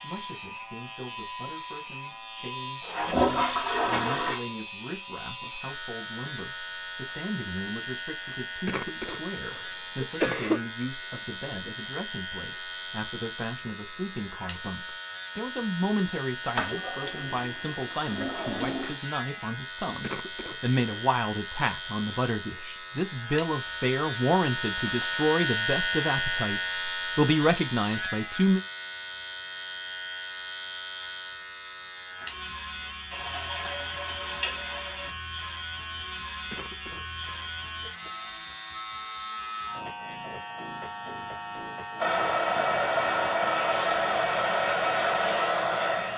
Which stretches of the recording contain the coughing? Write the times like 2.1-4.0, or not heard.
8.7-10.7, 20.0-20.8, 36.5-38.1.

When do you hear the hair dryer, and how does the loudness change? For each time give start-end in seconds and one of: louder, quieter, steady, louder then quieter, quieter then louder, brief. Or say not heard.
42.0-46.1 steady.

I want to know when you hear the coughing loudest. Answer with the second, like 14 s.
10 s.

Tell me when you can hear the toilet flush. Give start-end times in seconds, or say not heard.
2.8-4.4, 16.6-18.9, 33.1-35.1.